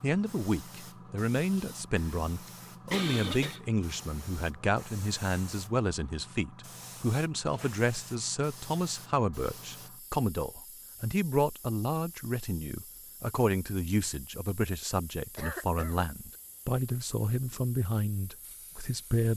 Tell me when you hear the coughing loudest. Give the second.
3 s.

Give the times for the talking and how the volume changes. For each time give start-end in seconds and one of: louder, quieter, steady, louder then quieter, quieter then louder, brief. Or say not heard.
0.0-19.3 steady.